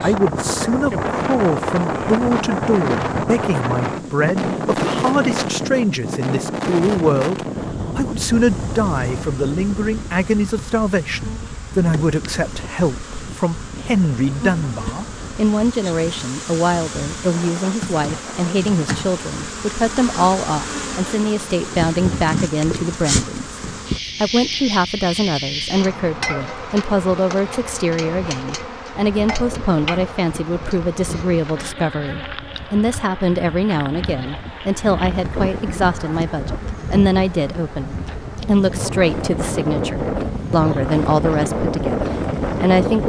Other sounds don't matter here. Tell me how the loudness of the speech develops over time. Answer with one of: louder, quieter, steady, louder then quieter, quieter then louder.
steady.